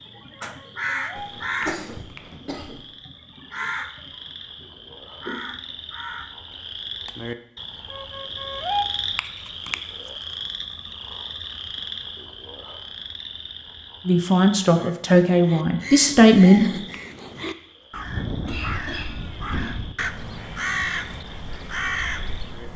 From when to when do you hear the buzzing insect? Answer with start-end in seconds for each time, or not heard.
not heard.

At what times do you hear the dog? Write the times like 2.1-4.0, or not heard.
not heard.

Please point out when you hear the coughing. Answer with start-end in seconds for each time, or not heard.
1.1-2.8, 18.4-19.8.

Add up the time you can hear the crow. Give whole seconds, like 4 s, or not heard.
14 s.